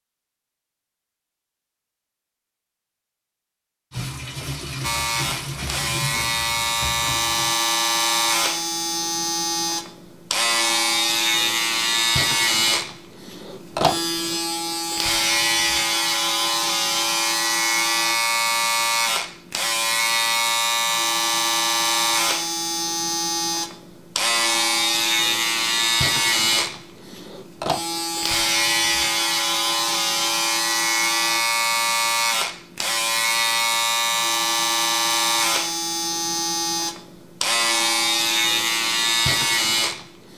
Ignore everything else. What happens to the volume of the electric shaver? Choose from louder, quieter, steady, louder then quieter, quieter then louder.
steady.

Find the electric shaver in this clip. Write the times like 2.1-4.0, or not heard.
4.8-40.3.